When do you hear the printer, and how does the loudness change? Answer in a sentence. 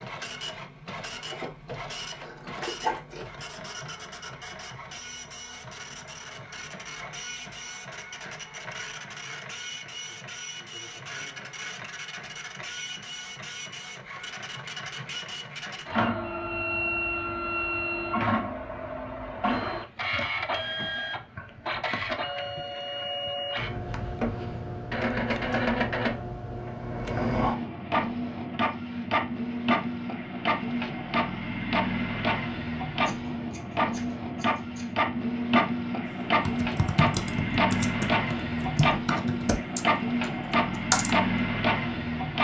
The printer can be heard from 0.0 to 42.3 s, getting louder.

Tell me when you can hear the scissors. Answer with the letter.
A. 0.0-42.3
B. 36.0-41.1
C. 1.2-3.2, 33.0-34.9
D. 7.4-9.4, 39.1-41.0
C.